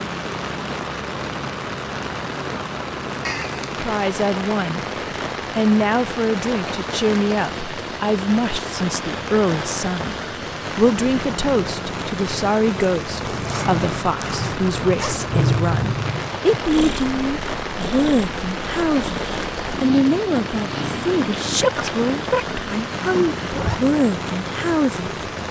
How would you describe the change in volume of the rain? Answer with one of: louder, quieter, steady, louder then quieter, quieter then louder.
steady.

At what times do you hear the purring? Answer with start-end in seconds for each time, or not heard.
13.1-23.5.